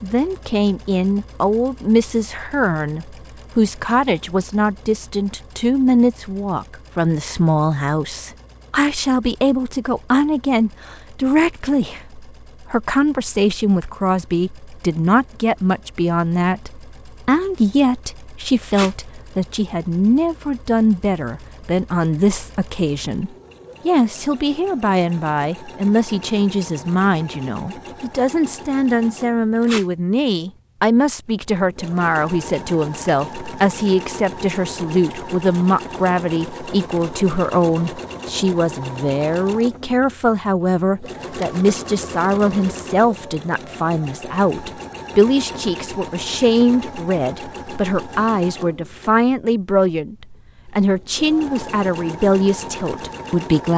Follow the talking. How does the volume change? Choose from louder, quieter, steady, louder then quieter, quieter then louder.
steady.